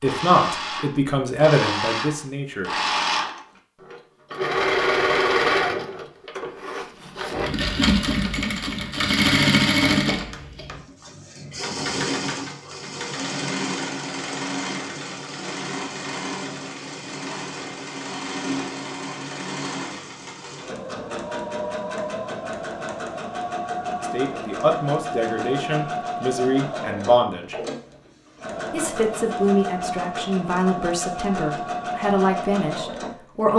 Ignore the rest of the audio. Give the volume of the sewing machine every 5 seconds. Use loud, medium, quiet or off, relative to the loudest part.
loud, loud, medium, medium, medium, medium, medium.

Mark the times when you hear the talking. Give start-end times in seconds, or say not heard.
0.0-2.7, 24.0-27.6, 28.7-33.5.